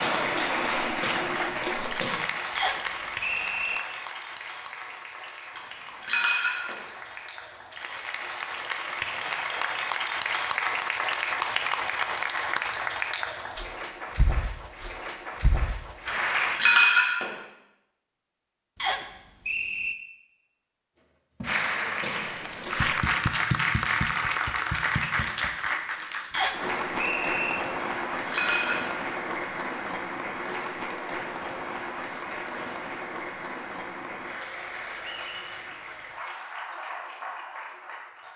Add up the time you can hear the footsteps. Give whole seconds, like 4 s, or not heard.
4 s.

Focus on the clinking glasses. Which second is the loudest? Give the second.
17 s.